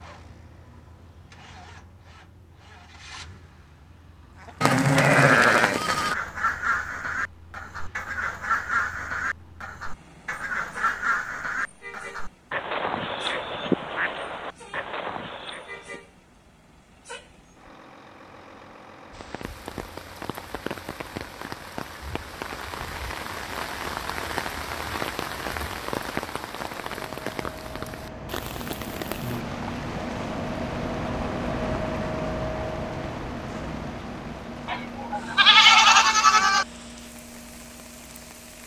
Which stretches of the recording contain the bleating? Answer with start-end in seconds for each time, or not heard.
4.6-6.2, 34.6-36.6.